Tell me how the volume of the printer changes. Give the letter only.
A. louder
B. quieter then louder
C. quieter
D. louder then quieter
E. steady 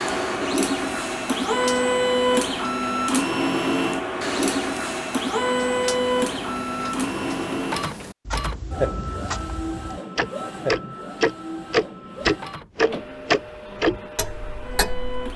C.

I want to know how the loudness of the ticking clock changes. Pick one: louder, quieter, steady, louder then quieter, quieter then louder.
louder.